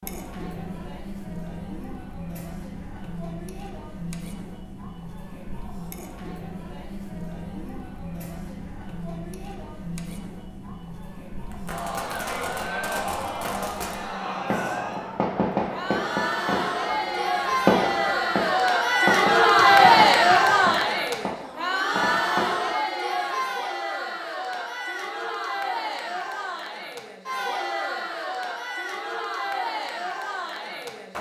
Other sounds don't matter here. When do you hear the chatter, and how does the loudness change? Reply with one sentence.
You can hear the chatter from 0.0 to 31.1 s, getting louder then quieter.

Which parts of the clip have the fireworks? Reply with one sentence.
You can hear the fireworks from 11.5 to 22.8 s.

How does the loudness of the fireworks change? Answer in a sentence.
The loudness of the fireworks goes up, then down.